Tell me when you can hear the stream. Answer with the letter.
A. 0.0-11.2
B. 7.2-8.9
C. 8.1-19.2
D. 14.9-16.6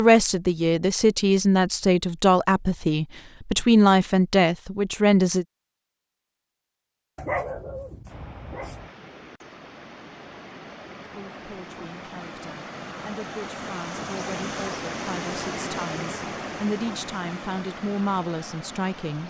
C.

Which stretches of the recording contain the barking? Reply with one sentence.
You can hear the barking from 7.2 to 8.9 s.